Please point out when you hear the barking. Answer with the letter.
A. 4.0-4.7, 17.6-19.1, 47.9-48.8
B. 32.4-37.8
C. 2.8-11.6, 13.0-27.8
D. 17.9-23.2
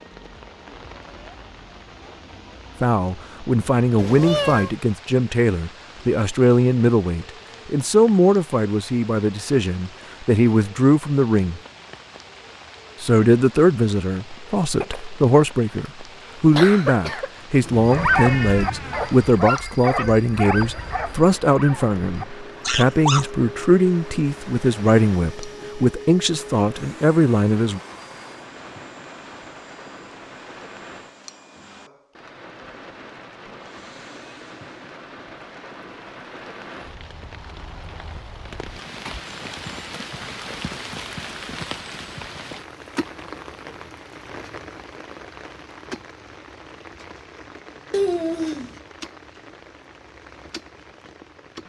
D.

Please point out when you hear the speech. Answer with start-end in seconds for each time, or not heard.
2.8-11.6, 13.0-27.8.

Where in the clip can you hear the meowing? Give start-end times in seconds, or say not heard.
4.0-4.7, 17.6-19.1, 47.9-48.8.